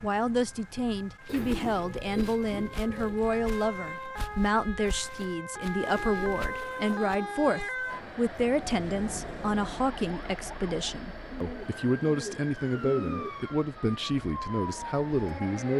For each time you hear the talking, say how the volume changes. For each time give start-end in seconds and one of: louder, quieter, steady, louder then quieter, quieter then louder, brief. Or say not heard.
0.0-15.7 steady.